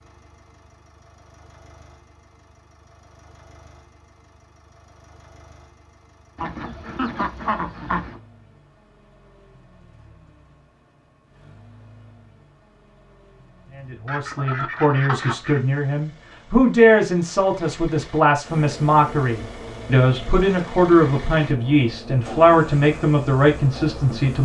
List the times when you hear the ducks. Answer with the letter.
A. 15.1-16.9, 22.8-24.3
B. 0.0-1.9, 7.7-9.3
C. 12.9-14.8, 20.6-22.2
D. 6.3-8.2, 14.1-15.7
D.